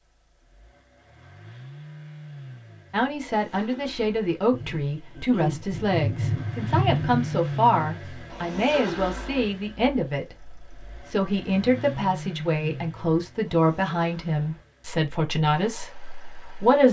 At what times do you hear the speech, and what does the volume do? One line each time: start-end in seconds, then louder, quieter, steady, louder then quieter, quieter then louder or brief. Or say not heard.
2.9-16.8 steady.